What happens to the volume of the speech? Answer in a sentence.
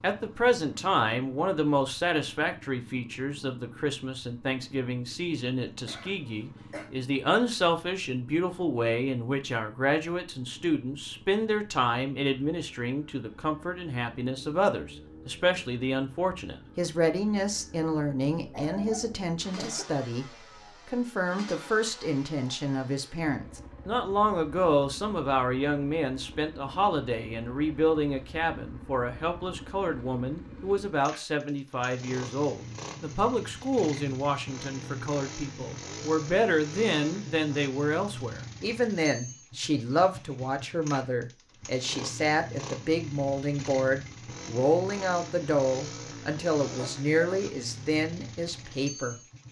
The volume of the speech stays about the same.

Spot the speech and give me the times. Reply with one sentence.
You can hear the speech from 0.0 to 49.2 s.